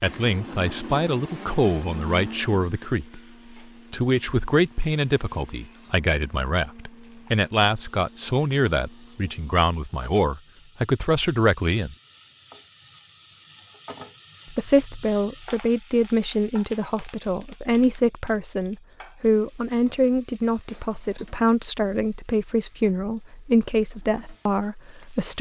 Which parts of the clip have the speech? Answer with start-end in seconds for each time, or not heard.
0.0-3.2, 3.9-11.9, 14.5-25.3.